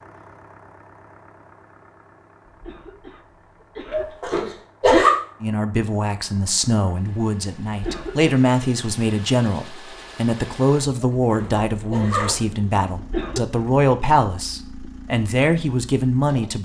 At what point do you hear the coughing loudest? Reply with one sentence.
The volume of the coughing peaks at 13 seconds.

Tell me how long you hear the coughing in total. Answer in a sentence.
The coughing can be heard for 3 seconds in total.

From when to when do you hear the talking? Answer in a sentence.
You can hear the talking from 5.4 to 16.6 s.